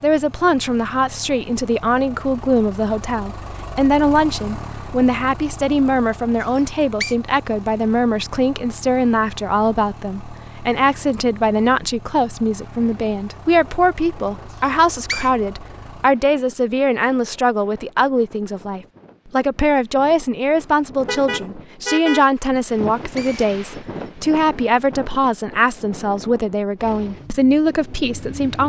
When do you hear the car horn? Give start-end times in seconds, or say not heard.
21.0-22.2.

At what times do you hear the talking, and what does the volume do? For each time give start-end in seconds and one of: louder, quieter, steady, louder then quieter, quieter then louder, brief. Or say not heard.
0.0-28.6 steady.